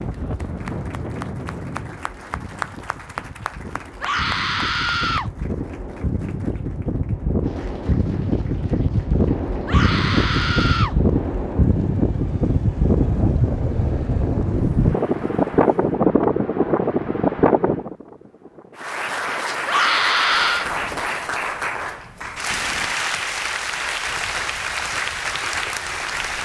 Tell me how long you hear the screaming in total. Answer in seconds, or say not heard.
4 s.